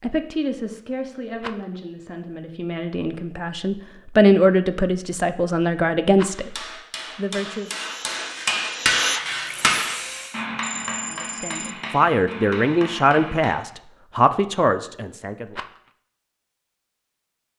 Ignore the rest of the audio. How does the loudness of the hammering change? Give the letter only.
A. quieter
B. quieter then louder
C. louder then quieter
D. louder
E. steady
C.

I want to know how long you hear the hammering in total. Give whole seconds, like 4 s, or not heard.
7 s.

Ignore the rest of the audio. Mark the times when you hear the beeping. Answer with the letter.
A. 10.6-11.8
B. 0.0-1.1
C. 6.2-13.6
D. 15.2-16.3
A.